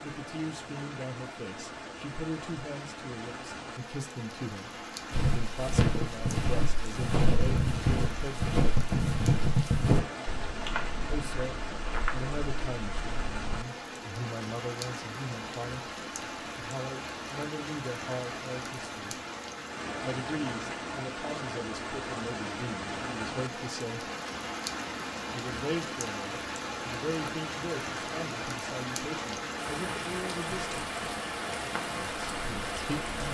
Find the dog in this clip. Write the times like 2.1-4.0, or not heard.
not heard.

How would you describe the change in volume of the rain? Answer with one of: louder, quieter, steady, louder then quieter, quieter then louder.
louder.